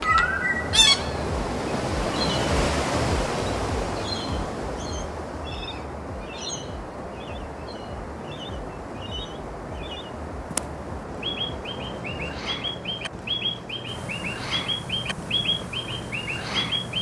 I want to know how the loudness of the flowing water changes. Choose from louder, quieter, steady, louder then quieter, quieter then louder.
quieter.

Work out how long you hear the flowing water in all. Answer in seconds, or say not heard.
17 s.